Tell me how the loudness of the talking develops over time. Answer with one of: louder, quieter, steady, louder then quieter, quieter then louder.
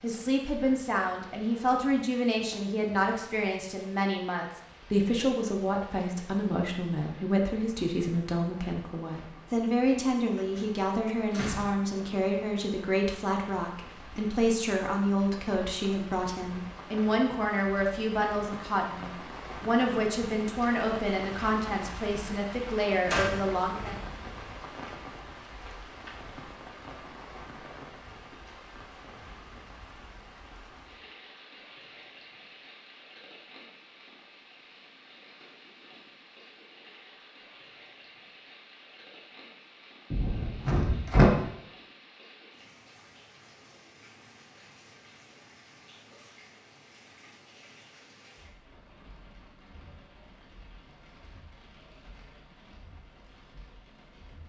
steady.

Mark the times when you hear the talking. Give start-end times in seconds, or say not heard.
0.0-23.9.